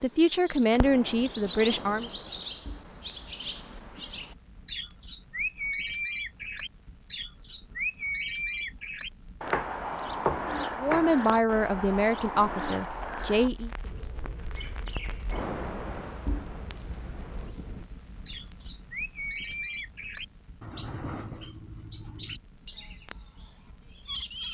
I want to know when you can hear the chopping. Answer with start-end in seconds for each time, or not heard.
9.4-11.2.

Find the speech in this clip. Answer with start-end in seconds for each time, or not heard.
0.0-2.1, 10.8-13.7.